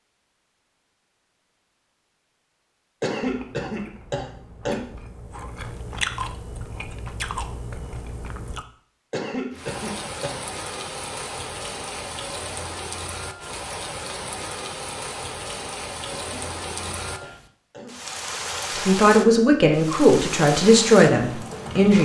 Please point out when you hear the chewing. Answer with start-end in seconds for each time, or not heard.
3.2-8.7.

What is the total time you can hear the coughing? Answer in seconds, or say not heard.
5 s.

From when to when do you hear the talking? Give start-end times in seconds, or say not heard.
18.8-21.9.